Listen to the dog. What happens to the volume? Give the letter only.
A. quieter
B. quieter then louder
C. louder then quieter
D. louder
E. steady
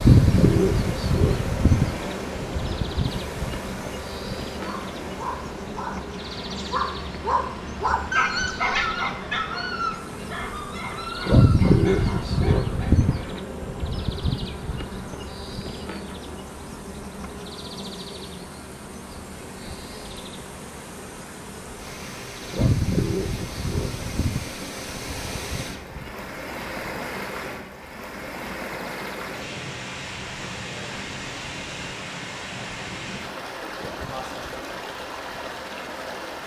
C.